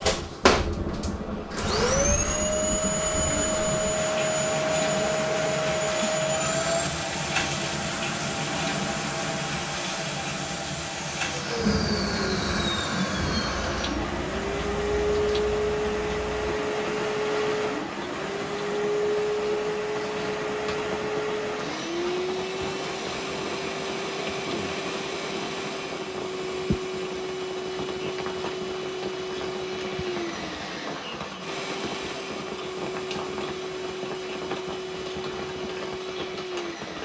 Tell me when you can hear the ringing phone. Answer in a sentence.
The ringing phone can't be heard in this clip.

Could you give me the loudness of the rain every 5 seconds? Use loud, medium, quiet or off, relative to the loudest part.
loud, loud, loud, medium, medium, medium, medium, medium.